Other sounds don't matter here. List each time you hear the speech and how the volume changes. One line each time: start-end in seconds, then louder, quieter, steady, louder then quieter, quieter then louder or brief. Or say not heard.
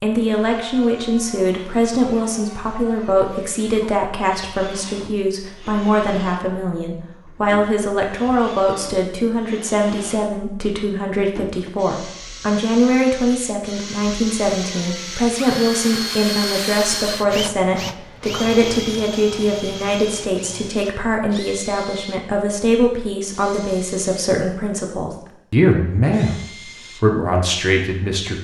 0.0-28.3 steady.